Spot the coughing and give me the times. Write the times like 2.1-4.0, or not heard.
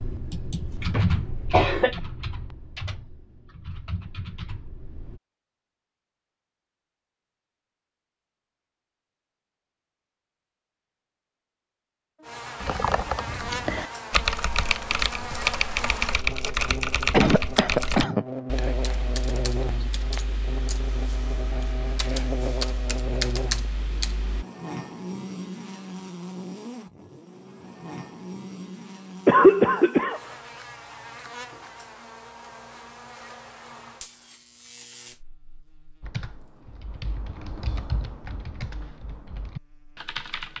0.8-2.0, 17.1-18.2, 29.2-30.2.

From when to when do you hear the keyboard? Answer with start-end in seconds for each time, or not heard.
0.0-5.2, 12.6-24.4, 36.0-40.5.